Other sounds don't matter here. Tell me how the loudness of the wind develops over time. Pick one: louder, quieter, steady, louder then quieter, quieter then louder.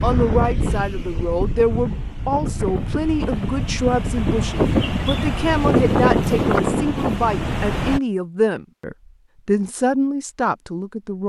louder.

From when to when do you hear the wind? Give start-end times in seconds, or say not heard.
0.0-8.0.